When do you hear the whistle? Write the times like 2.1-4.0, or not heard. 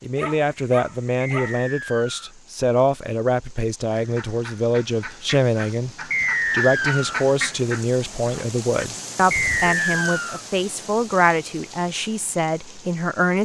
1.2-2.3, 6.1-7.2, 9.3-10.4.